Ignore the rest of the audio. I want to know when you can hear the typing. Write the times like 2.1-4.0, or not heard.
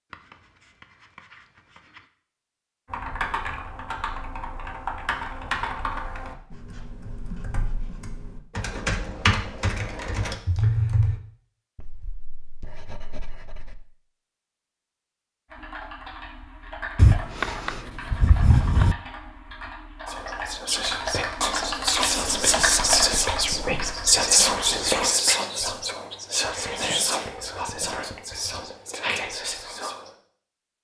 2.9-11.2, 15.5-24.9.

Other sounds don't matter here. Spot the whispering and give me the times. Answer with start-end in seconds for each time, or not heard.
20.1-30.1.